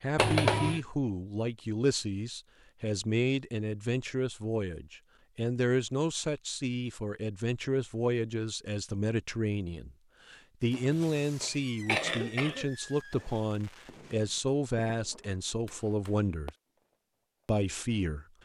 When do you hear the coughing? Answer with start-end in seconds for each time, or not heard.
0.1-0.8, 10.7-12.7.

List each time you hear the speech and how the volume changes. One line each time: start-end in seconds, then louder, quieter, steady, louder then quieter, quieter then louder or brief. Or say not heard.
0.0-16.6 steady
17.4-18.2 brief.